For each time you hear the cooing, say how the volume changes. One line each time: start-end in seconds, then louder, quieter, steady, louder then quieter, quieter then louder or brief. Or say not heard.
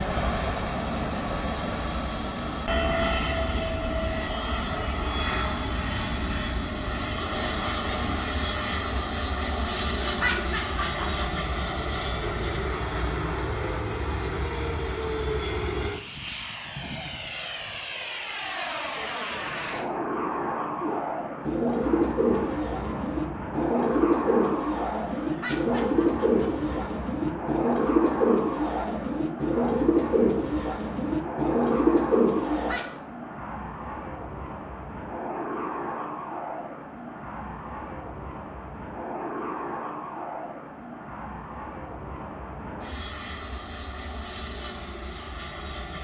20.8-32.8 steady.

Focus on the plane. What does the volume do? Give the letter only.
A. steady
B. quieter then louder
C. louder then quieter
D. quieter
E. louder
D.